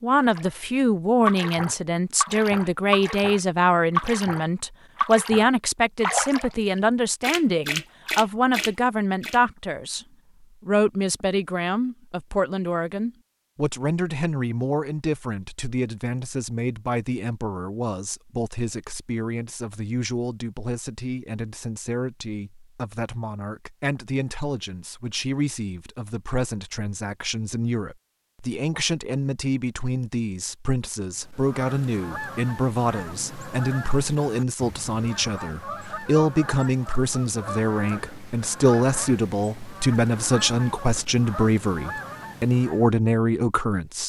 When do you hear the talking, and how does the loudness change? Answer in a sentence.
You can hear the talking from 0.0 to 44.0 s, getting quieter then louder.